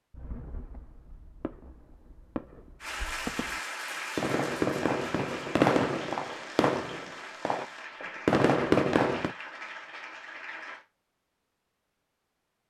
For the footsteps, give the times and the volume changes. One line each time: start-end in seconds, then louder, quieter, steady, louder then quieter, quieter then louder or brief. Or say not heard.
not heard.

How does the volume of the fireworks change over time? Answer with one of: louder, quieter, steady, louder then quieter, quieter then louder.
louder.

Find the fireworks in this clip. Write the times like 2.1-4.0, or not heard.
0.1-9.3.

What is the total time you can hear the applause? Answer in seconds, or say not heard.
8 s.